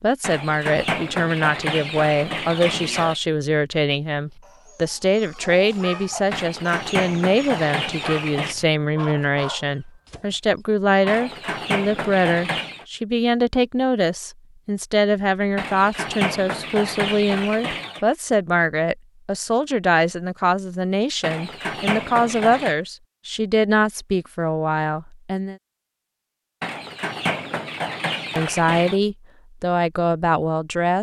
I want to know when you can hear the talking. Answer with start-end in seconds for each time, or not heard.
0.0-25.6, 28.4-30.9.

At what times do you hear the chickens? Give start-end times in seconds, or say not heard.
0.2-3.2, 6.3-8.6, 11.1-12.8, 15.6-18.1, 21.2-22.8, 26.6-29.0.